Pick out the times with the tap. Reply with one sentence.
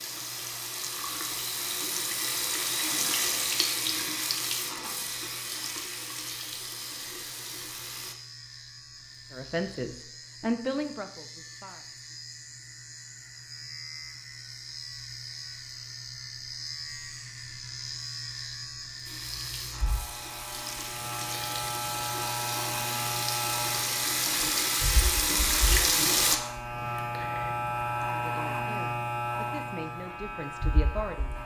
The tap can be heard from 0.0 to 8.2 s and from 19.0 to 26.4 s.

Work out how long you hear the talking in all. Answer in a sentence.
You can hear the talking for 6 seconds altogether.